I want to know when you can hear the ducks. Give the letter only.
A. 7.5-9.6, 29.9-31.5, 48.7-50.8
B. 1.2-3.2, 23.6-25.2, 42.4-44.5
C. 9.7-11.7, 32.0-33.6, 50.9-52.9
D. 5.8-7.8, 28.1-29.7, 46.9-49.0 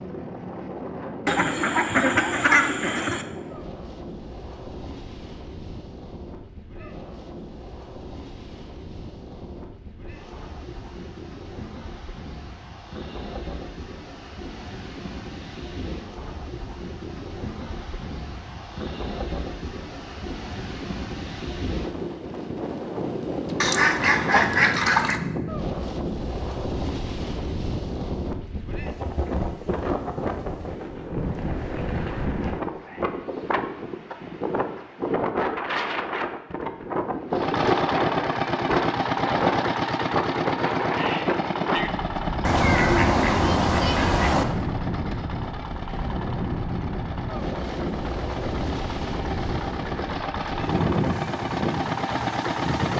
B.